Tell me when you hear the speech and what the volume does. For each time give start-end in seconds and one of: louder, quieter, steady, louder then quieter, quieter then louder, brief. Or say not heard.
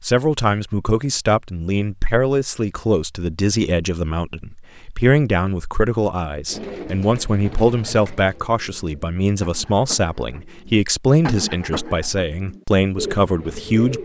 0.0-14.0 steady.